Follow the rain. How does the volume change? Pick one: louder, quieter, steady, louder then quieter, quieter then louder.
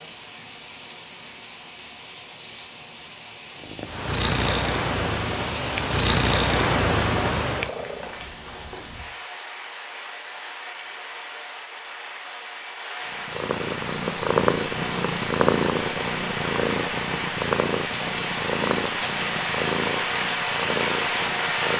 louder.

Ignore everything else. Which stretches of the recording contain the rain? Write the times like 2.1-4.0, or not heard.
0.0-21.7.